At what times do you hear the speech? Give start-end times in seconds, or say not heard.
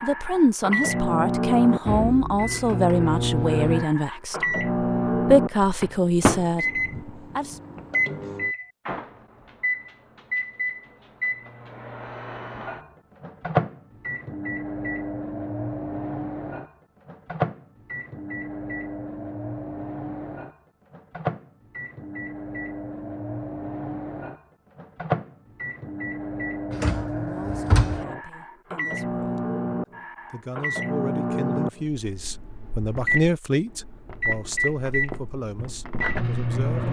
0.0-7.5, 26.9-29.4, 30.3-36.8.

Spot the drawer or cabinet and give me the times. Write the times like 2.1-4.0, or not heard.
26.7-28.1.